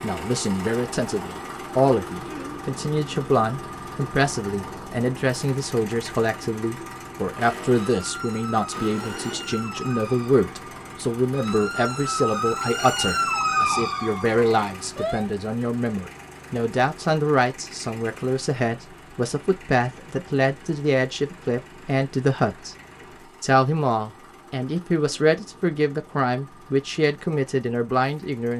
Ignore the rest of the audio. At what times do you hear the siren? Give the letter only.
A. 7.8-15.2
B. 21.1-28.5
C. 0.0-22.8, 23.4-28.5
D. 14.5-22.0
A.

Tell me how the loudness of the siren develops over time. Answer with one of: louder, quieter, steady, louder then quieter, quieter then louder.
louder.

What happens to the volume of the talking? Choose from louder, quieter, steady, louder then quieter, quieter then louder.
steady.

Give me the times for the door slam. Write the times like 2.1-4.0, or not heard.
not heard.